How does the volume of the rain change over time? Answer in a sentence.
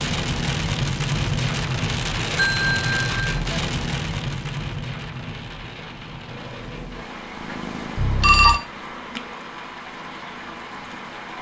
The volume of the rain goes down.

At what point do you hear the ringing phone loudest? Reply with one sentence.
The volume of the ringing phone peaks at 8 seconds.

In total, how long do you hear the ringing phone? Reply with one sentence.
You can hear the ringing phone for 2 seconds altogether.